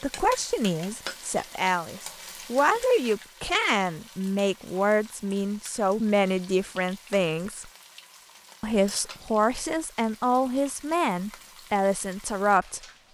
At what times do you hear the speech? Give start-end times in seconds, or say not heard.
0.0-7.7, 8.6-12.8.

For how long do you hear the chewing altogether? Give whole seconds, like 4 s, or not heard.
not heard.